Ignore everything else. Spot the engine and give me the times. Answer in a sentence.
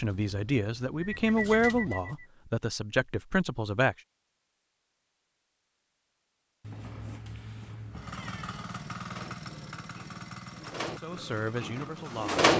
You can hear the engine from 7.9 to 12.5 s.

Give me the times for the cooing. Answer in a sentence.
The cooing can be heard from 0.0 to 2.2 s and from 9.1 to 12.5 s.